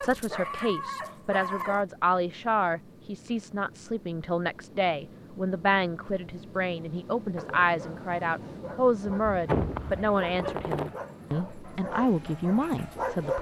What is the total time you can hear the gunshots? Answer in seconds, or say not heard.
2 s.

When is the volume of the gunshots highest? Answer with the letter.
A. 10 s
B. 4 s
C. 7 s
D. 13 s
A.